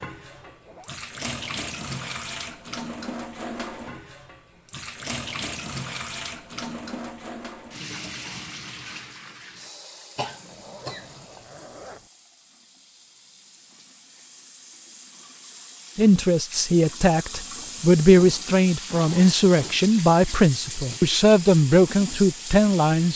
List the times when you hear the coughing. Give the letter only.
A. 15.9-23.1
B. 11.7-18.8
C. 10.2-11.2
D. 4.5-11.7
C.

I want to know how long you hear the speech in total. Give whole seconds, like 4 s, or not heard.
7 s.